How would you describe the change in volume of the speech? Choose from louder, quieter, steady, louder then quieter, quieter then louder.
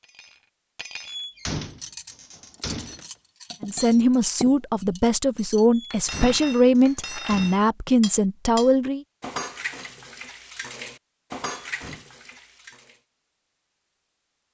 steady.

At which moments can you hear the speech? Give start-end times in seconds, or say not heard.
3.6-9.1.